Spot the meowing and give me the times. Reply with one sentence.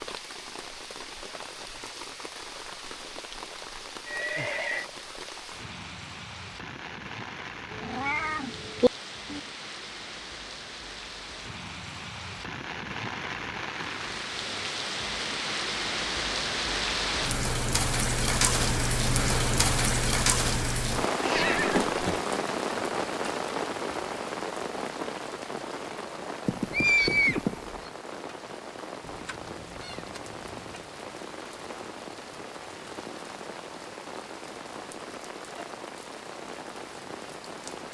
The meowing can be heard from 7.7 to 9.4 s, from 21.2 to 21.6 s and from 29.0 to 30.9 s.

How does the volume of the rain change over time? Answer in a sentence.
The volume of the rain goes up, then down.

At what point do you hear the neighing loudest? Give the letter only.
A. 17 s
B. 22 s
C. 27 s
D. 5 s
C.